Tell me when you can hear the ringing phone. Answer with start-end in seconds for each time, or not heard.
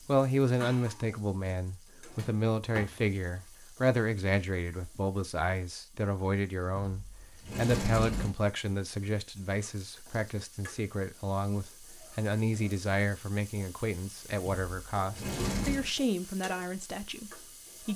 not heard.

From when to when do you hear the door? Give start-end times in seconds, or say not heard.
2.0-3.1, 6.8-8.3, 14.4-15.9.